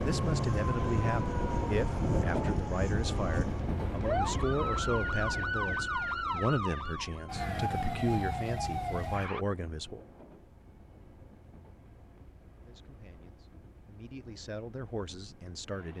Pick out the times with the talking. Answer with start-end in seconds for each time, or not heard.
0.0-10.0, 12.6-15.9.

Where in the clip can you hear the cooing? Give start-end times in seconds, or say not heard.
not heard.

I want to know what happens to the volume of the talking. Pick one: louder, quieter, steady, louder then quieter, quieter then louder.
quieter.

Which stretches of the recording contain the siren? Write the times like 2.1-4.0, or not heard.
0.0-9.4.